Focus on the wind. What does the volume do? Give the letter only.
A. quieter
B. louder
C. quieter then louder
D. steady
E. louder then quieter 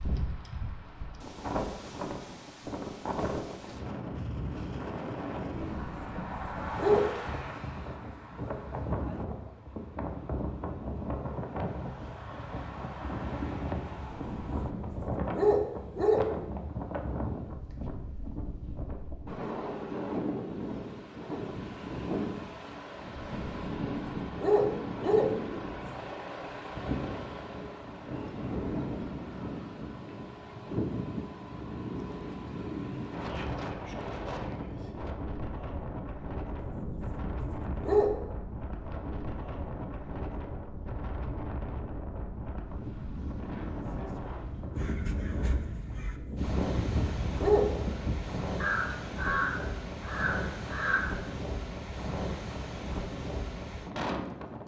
D.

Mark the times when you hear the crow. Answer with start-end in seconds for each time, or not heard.
44.8-51.3.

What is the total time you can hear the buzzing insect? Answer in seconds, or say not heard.
not heard.